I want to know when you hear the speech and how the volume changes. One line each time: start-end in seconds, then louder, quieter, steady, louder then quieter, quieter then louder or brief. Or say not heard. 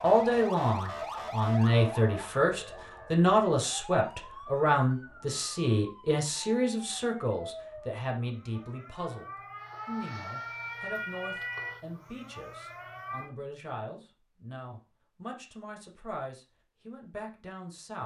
0.0-18.0 quieter.